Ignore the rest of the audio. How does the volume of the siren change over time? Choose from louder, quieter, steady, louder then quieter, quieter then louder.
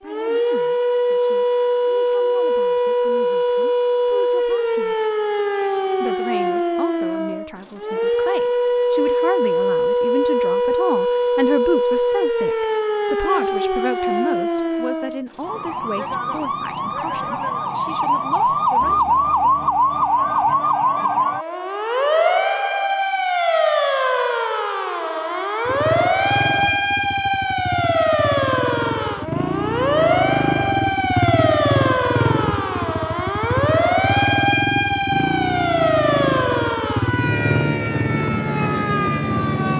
steady.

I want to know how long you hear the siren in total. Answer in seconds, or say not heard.
40 s.